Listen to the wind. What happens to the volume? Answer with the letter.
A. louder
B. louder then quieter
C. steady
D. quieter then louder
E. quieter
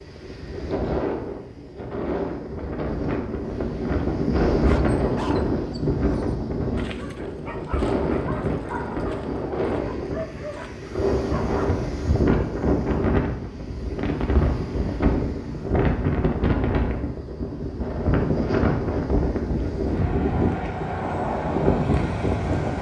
C.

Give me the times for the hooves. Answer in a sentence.
The hooves can't be heard in this clip.